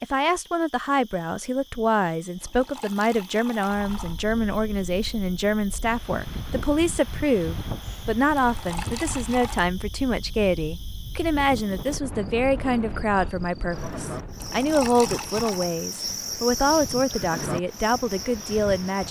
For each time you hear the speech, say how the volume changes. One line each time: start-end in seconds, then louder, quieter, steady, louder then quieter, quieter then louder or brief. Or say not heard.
0.0-19.0 steady.